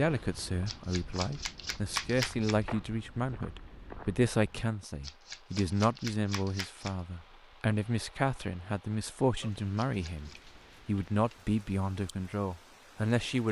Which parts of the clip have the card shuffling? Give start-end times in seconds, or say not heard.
0.7-2.5, 5.0-7.0, 9.8-10.3.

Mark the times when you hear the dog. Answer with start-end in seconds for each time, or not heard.
not heard.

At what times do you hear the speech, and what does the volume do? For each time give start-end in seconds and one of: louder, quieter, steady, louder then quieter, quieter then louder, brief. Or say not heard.
0.0-13.4 steady.